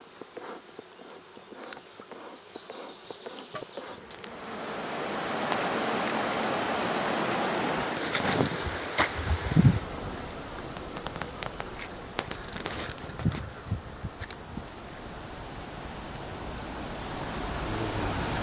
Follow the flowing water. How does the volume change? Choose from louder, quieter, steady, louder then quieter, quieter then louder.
quieter then louder.